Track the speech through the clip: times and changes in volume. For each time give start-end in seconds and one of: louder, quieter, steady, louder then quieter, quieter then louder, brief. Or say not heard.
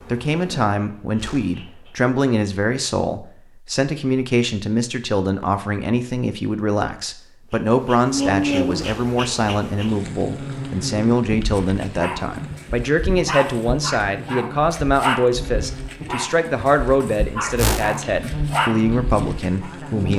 0.1-20.1 steady.